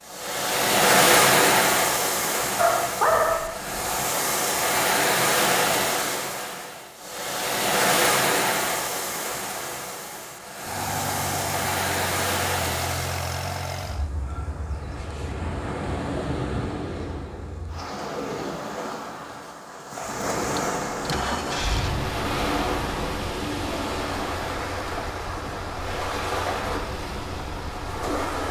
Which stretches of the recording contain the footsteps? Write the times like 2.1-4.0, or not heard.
not heard.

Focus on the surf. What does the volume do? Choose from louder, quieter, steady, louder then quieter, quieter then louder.
quieter.